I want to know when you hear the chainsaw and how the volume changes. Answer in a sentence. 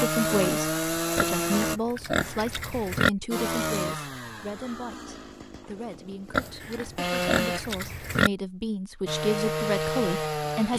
You can hear the chainsaw briefly from 0.0 to 1.8 s; from 3.3 to 7.6 s, getting quieter then louder; and briefly from 9.1 to 10.7 s.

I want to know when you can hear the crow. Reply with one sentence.
The crow can't be heard in this clip.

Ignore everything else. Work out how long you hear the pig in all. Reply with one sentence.
The pig can be heard for 4 seconds in total.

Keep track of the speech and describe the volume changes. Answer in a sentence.
The volume of the speech goes down, then up.